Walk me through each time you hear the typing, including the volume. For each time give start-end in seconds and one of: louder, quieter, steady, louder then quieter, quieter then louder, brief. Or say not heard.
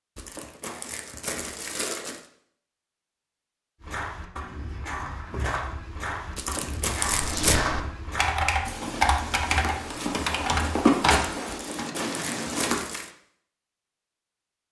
7.0-13.0 quieter.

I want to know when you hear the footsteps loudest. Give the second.
11 s.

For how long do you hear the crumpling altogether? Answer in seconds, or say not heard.
5 s.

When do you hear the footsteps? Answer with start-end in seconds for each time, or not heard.
3.8-12.8.